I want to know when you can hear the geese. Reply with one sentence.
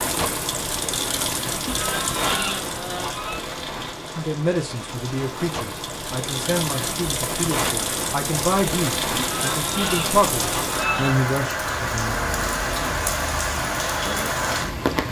You can hear the geese from 1.6 to 3.4 s and from 9.2 to 11.2 s.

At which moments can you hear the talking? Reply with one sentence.
You can hear the talking from 4.1 to 12.2 s.